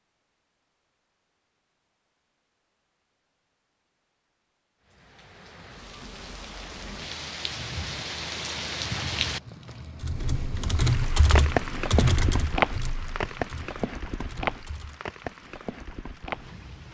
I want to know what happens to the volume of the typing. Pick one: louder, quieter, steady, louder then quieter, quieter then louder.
quieter.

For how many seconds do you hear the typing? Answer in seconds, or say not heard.
5 s.